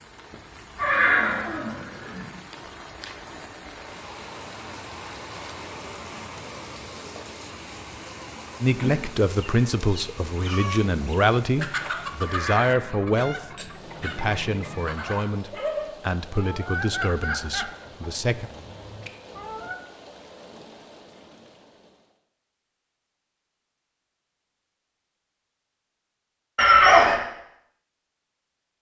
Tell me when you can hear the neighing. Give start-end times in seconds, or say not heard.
0.8-2.3, 12.2-13.8, 26.6-27.2.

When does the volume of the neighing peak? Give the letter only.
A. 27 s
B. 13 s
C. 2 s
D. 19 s
A.